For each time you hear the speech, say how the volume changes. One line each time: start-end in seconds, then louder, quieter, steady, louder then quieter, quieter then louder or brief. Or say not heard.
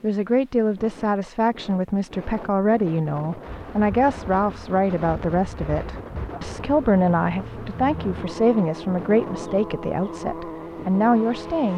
0.0-11.7 steady.